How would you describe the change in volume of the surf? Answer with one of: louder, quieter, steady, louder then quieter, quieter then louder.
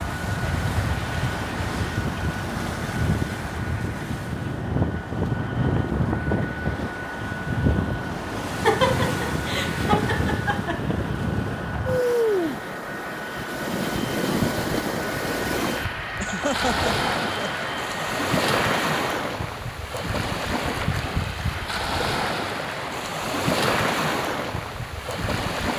steady.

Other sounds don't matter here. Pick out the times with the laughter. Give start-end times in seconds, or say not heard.
8.6-10.9, 16.2-17.6.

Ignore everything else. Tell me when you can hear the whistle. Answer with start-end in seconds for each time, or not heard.
not heard.